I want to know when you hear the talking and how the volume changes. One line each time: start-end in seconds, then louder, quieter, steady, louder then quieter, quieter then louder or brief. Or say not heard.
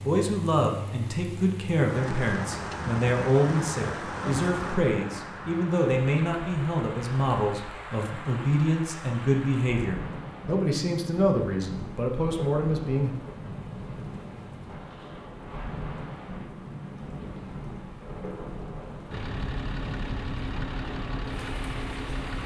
0.0-13.2 steady.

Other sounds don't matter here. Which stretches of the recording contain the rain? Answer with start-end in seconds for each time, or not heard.
0.0-22.4.